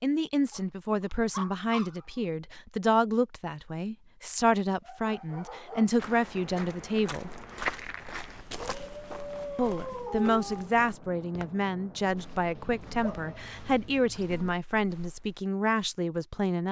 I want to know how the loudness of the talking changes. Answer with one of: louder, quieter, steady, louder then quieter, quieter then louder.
steady.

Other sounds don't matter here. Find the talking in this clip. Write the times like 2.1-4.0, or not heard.
0.0-7.3, 9.6-16.6.